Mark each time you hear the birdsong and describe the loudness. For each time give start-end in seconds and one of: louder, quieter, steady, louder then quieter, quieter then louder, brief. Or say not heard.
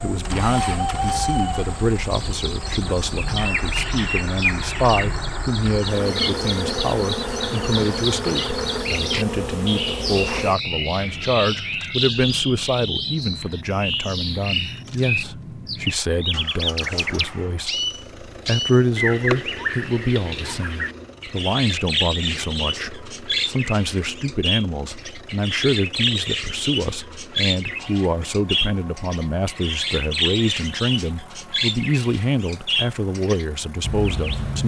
0.0-34.6 steady.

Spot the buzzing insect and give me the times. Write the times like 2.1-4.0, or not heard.
0.0-10.6.